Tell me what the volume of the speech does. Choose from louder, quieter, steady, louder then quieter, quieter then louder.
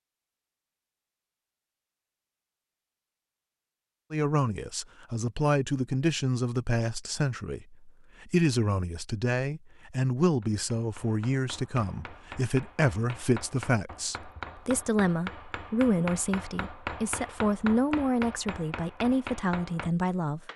steady.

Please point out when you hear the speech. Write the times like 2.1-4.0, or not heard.
4.1-20.4.